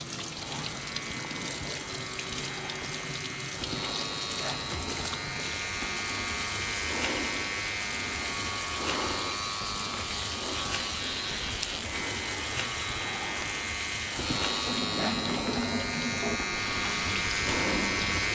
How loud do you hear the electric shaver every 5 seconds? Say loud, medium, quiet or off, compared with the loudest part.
medium, loud, loud, loud.